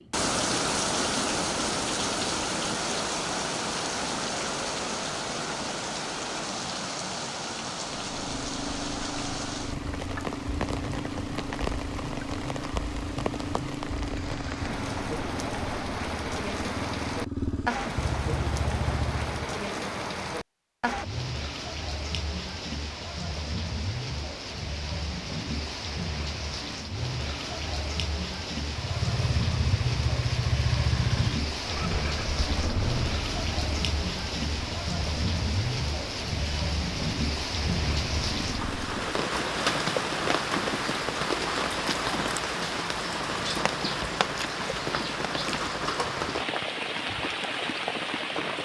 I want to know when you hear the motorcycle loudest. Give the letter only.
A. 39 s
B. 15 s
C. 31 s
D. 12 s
C.